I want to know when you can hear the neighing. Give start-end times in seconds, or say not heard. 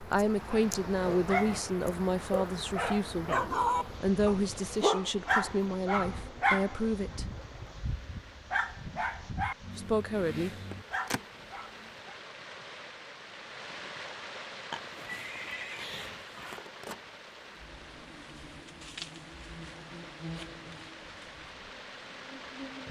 14.7-16.6.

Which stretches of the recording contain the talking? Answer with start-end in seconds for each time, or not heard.
0.0-3.3, 4.0-7.2, 9.8-10.5.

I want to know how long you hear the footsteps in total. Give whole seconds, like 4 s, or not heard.
not heard.